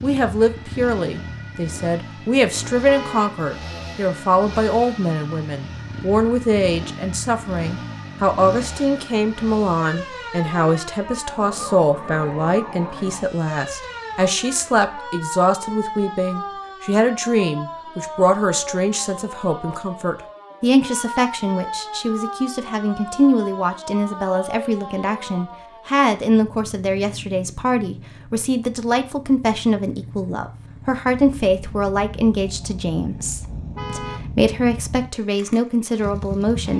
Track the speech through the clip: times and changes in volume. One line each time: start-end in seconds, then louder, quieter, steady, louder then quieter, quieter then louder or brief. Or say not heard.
0.0-36.7 steady.